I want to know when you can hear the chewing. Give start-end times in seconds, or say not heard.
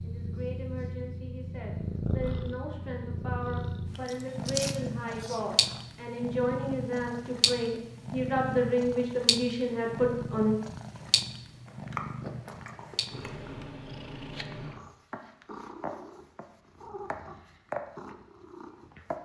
4.0-5.8, 11.7-13.6.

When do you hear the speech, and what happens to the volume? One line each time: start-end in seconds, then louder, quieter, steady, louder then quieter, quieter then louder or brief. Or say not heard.
0.0-10.6 louder.